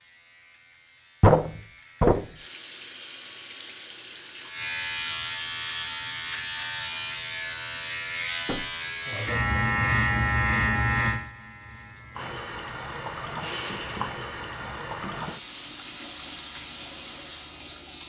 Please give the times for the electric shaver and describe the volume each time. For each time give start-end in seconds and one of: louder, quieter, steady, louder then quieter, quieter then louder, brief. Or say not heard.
0.0-18.0 louder then quieter.